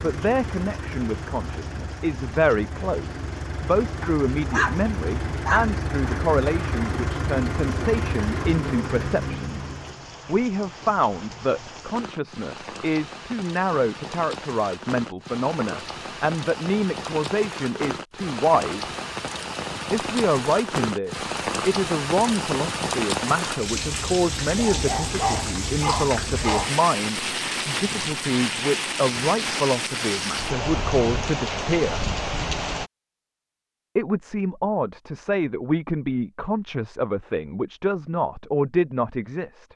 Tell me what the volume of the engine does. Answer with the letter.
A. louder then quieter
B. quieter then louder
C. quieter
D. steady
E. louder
E.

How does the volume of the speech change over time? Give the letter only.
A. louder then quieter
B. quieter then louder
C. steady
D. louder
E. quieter
C.